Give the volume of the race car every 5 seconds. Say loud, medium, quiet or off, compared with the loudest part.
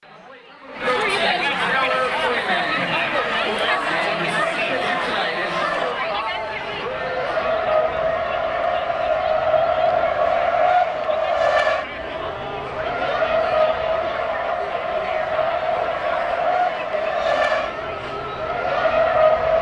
medium, loud, loud, loud.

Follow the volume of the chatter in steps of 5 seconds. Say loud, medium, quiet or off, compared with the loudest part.
loud, medium, medium, medium.